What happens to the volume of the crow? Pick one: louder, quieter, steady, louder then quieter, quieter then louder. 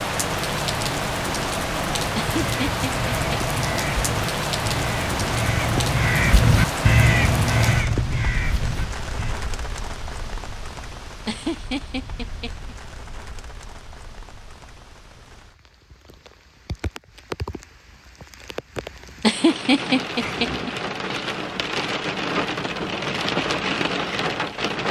louder then quieter.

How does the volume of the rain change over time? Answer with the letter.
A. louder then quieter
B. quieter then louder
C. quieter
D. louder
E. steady
B.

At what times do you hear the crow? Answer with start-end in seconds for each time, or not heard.
2.2-9.3.